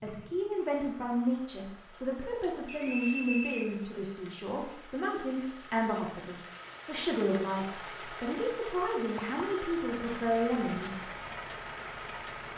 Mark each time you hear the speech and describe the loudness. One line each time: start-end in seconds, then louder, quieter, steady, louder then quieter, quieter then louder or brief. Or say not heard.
0.0-11.0 steady.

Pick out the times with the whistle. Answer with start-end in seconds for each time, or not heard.
2.6-3.6.